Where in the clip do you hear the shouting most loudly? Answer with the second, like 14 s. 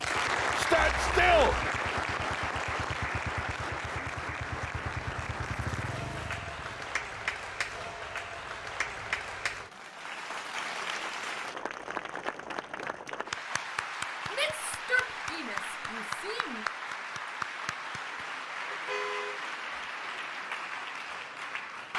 1 s.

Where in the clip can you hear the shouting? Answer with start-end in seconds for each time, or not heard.
0.6-1.6, 14.3-16.6.